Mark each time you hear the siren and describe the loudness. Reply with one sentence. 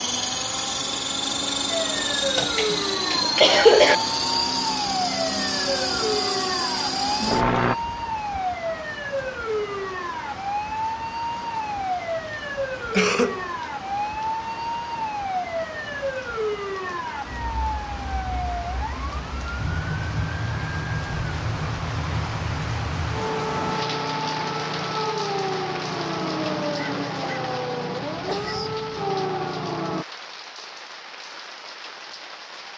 You can hear the siren from 1.6 to 30.1 s, at a steady volume.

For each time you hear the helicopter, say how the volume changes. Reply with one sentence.
The helicopter can be heard from 0.0 to 7.8 s, at a steady volume.